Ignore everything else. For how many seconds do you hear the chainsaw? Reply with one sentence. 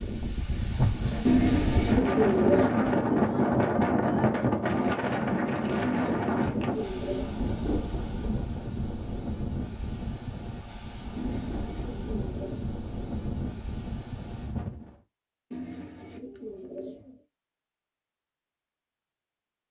You can't hear the chainsaw here.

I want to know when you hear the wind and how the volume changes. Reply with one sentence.
The wind can be heard from 0.0 to 15.0 s, getting quieter.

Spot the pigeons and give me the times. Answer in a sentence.
You can hear the pigeons from 1.2 to 3.2 s, from 5.8 to 7.8 s, from 11.2 to 12.8 s and from 15.5 to 17.2 s.